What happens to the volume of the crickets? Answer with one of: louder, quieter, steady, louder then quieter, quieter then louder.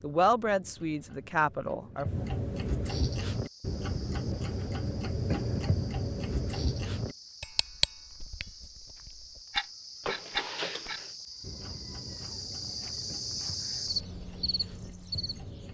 louder.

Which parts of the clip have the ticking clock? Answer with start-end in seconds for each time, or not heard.
0.0-15.6.